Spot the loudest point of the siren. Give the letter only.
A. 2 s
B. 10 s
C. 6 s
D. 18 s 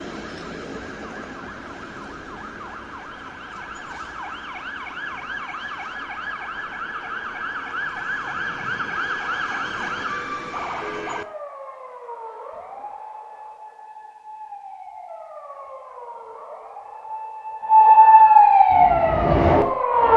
D.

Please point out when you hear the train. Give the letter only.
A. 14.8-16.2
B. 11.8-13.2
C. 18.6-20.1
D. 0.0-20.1
C.